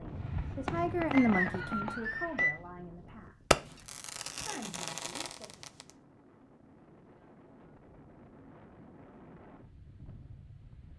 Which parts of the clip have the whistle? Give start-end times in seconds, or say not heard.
1.1-2.5.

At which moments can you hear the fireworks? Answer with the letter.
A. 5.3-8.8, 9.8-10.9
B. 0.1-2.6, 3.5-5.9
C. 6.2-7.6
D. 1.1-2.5
B.